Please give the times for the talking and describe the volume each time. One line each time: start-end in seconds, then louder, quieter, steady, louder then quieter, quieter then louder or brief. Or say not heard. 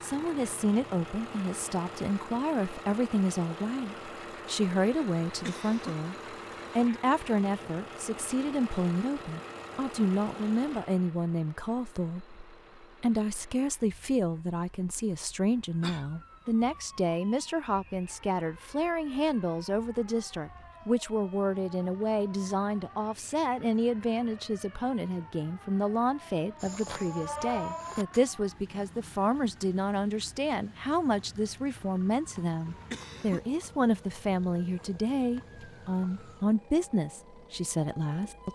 0.0-6.2 steady
6.8-38.5 steady.